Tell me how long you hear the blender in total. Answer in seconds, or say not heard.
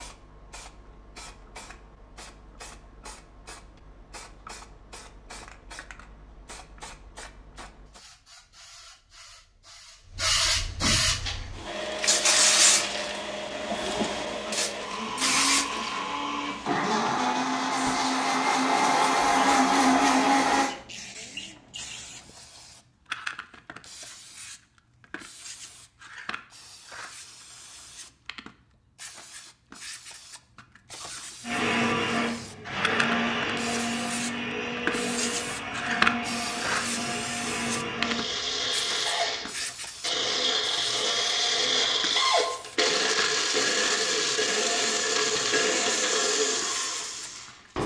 26 s.